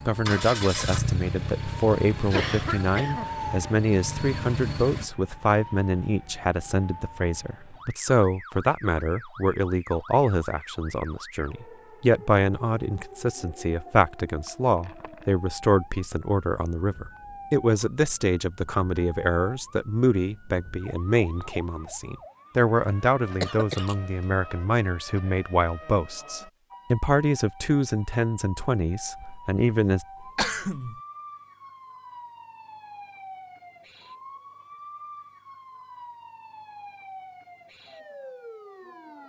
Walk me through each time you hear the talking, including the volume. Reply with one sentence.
You can hear the talking from 0.1 to 30.1 s, at a steady volume.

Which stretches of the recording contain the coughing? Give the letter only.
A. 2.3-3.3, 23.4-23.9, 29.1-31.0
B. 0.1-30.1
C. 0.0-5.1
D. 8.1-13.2
A.